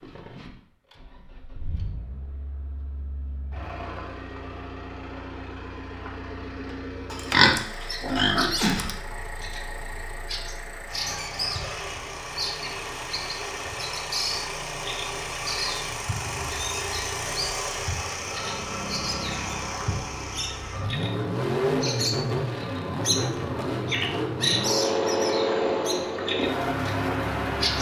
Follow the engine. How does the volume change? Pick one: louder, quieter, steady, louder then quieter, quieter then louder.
louder.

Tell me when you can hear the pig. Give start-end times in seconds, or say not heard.
7.1-8.9.